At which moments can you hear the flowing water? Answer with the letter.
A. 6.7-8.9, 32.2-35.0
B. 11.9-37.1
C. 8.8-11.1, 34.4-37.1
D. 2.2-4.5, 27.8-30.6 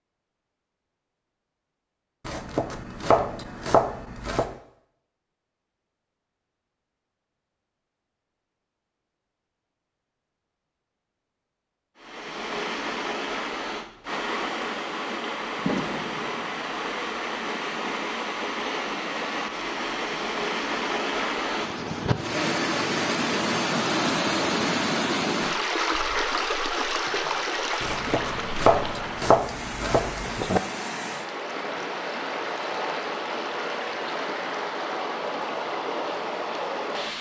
B.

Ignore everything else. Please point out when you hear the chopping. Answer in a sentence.
The chopping can be heard from 2.2 to 4.5 s and from 27.8 to 30.6 s.